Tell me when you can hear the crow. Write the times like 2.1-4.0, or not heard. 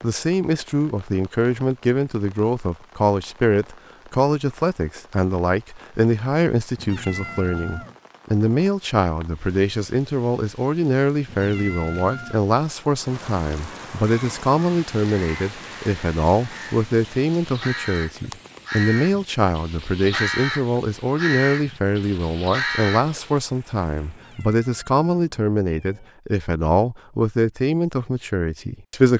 14.0-23.4.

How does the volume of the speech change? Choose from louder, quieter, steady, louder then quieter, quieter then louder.
steady.